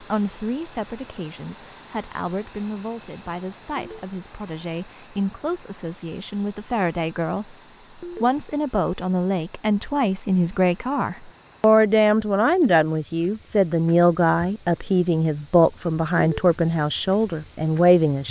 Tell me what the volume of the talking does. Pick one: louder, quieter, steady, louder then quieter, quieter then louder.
louder.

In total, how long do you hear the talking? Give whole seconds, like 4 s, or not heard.
18 s.